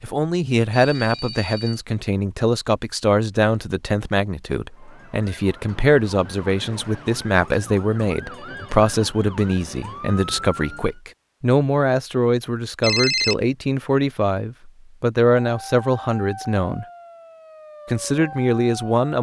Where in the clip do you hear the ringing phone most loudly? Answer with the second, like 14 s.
13 s.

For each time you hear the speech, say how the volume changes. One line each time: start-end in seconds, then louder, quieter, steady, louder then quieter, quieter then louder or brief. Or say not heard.
0.0-16.9 steady
17.9-19.1 brief.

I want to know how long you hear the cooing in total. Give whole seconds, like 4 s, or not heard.
not heard.